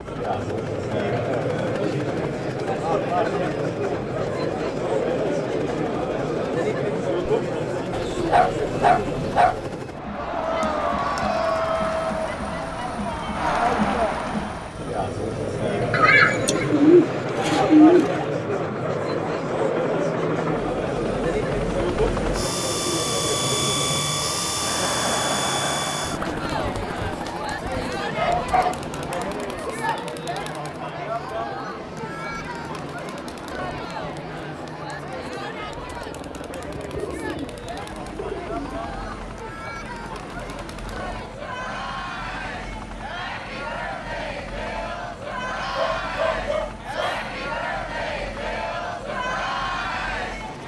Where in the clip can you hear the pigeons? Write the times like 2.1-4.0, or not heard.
15.9-18.3, 36.9-38.8.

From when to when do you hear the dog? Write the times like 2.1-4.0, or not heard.
7.9-9.7, 28.1-30.1, 45.6-47.2.